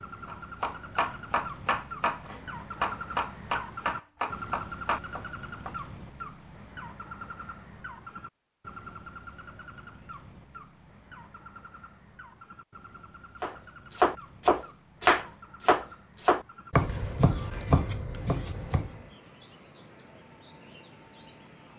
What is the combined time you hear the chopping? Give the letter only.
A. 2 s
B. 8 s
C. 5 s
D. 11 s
D.